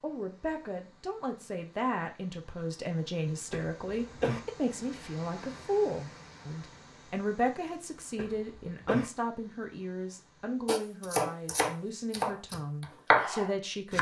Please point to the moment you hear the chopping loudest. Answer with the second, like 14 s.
13 s.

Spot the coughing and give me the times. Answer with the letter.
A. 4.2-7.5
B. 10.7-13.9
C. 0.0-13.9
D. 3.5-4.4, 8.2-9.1
D.